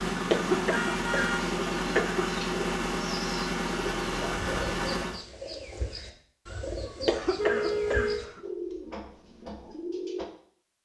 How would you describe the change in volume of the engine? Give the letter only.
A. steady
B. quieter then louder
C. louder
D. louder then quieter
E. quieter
A.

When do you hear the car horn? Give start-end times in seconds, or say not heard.
0.7-1.5, 7.3-8.2.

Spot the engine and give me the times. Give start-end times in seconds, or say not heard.
0.0-5.2.